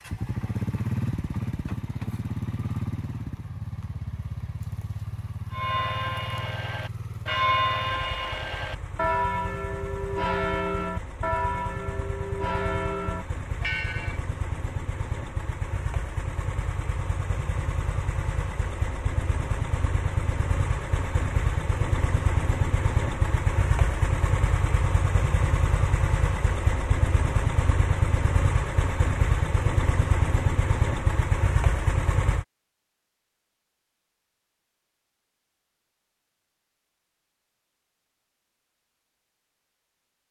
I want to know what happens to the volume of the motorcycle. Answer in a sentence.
The loudness of the motorcycle goes down, then up.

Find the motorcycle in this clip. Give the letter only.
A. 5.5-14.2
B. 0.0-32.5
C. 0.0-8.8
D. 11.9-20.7
B.